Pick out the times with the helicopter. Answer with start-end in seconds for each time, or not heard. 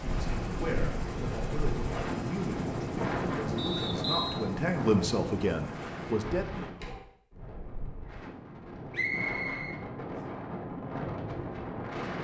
0.0-6.2.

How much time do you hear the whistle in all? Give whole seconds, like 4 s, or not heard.
2 s.